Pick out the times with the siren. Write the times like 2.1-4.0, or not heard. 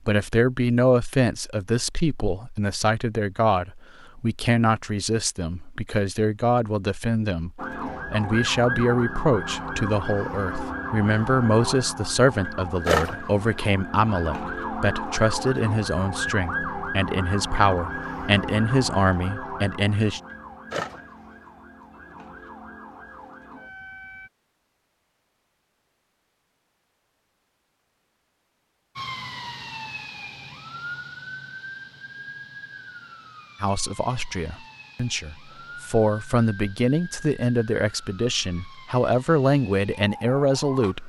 7.5-24.3, 28.9-41.0.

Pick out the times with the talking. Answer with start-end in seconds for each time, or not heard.
0.1-20.2, 33.6-41.0.